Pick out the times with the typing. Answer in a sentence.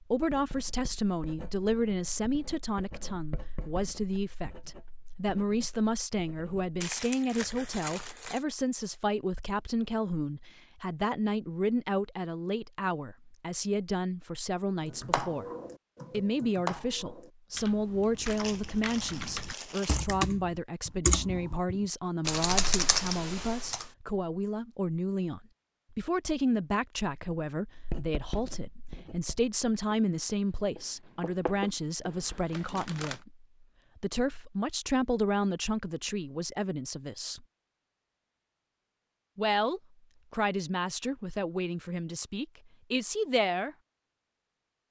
You can hear the typing from 14.8 to 23.9 s.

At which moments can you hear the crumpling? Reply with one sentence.
You can hear the crumpling from 6.8 to 8.4 s, from 18.2 to 20.1 s and from 32.5 to 33.2 s.